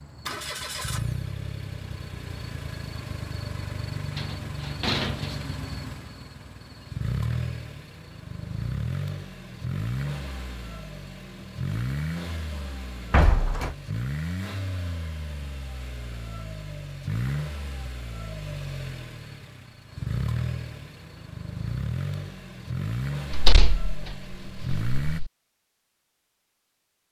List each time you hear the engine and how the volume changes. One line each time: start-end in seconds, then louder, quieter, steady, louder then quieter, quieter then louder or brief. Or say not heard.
0.0-25.2 steady.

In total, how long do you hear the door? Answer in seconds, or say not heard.
4 s.